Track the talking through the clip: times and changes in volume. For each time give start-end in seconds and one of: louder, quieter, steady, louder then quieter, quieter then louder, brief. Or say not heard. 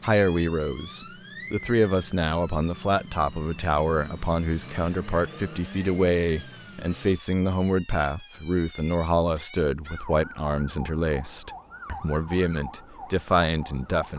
0.0-14.1 steady.